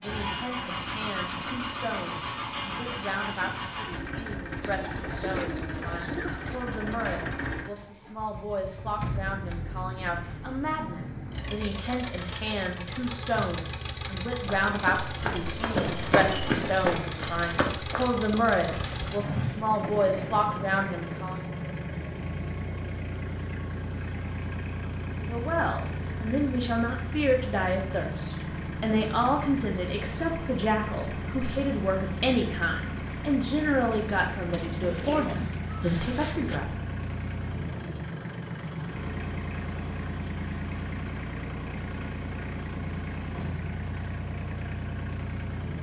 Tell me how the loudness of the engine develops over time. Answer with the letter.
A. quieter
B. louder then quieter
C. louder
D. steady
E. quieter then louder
D.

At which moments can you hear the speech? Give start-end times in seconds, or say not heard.
0.0-21.4, 25.2-36.9.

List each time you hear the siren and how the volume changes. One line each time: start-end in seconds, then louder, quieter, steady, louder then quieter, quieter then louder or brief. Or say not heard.
not heard.